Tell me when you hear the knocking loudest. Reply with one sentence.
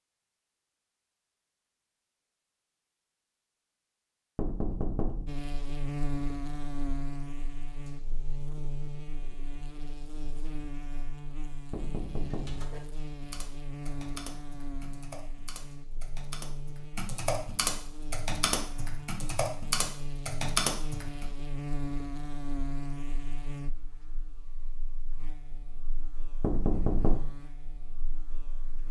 The volume of the knocking peaks at 27 seconds.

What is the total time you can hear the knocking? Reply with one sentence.
The knocking can be heard for 3 seconds in total.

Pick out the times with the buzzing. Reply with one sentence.
You can hear the buzzing from 5.2 to 28.8 s.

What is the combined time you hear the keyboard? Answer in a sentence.
The keyboard can be heard for 9 seconds in total.